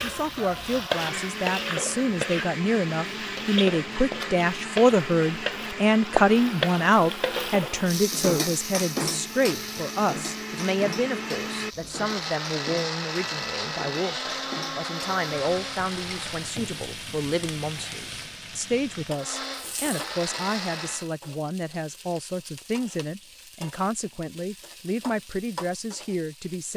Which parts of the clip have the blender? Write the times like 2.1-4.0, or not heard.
0.0-16.6, 19.1-21.1.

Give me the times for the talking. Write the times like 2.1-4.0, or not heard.
0.0-26.7.